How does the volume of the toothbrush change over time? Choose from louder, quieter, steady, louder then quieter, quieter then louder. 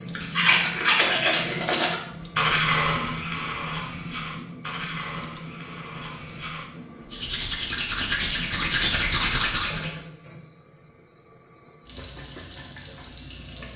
quieter then louder.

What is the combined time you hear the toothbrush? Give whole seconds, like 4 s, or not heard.
10 s.